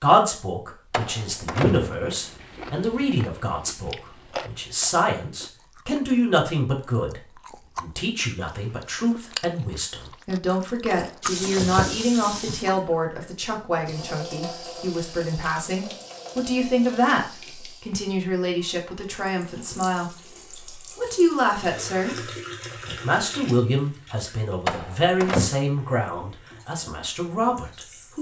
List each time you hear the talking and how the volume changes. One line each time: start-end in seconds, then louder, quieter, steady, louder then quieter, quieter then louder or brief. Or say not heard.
0.0-28.1 steady.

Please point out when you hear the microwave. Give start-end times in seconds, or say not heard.
not heard.